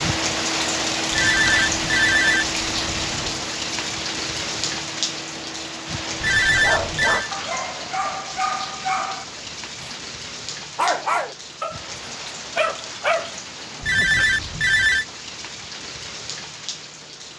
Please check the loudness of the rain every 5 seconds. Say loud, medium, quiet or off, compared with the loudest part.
loud, medium, medium, medium.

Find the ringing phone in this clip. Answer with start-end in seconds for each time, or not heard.
1.1-3.4, 6.2-7.3, 13.8-15.1.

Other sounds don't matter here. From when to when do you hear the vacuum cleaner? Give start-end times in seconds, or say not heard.
0.0-7.3.